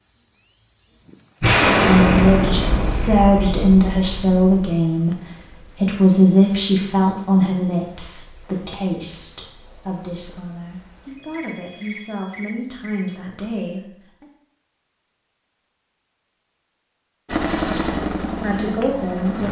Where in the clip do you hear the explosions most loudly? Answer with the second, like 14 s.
2 s.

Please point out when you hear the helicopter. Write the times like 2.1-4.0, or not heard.
17.2-19.4.